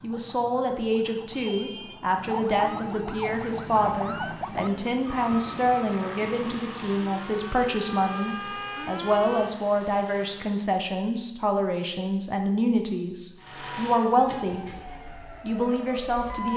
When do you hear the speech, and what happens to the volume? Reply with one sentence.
You can hear the speech from 0.0 to 14.8 s, at a steady volume; and briefly from 15.4 to 16.5 s.